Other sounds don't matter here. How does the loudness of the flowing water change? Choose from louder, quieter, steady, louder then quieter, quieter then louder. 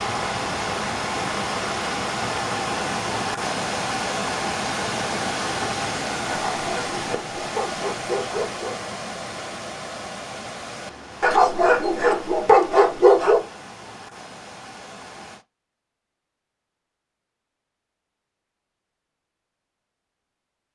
quieter.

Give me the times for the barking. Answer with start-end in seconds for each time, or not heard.
6.2-8.8, 11.2-13.4.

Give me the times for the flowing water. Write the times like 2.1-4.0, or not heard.
0.0-15.4.